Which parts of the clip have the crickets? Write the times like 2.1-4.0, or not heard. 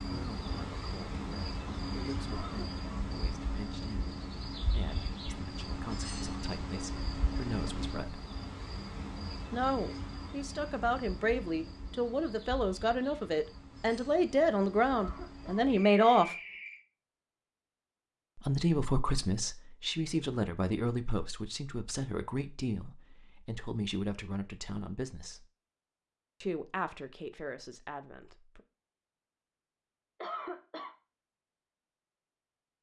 0.0-16.8.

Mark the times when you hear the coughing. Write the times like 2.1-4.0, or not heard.
2.3-2.9, 14.9-15.7, 30.2-30.9.